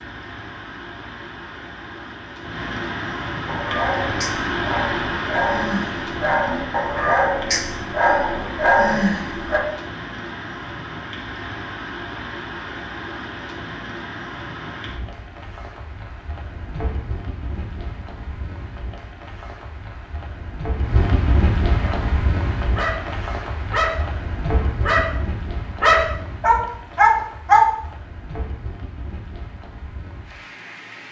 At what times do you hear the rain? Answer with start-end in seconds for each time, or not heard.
0.0-31.0.